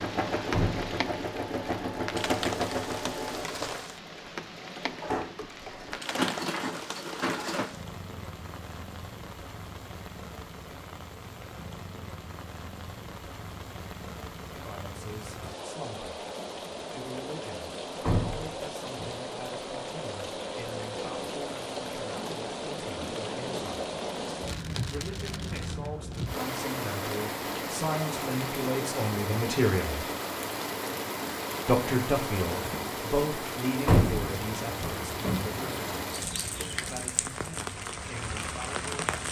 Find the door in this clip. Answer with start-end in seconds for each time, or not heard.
0.5-0.9, 18.0-19.1, 33.9-35.6.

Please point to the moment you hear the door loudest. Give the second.
34 s.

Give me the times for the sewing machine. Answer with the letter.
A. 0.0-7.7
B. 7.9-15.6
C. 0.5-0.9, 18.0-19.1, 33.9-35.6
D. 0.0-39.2
A.